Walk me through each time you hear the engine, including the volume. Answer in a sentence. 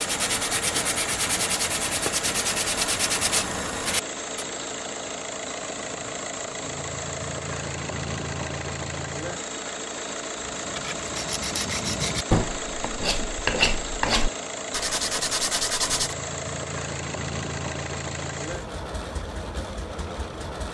The engine can be heard from 0.0 to 20.6 s, at a steady volume.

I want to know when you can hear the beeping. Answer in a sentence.
You can't hear the beeping here.